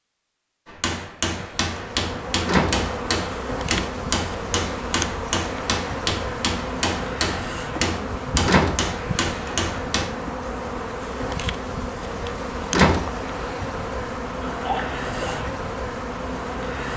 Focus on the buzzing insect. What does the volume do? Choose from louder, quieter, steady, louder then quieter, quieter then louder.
steady.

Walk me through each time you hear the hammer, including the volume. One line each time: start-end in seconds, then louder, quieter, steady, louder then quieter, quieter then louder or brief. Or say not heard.
0.7-10.1 steady.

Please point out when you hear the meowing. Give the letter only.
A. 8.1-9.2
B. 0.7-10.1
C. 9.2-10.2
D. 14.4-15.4
D.